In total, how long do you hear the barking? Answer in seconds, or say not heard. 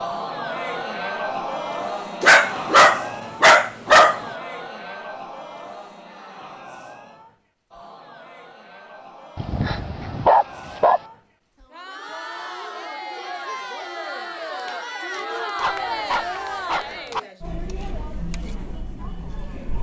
5 s.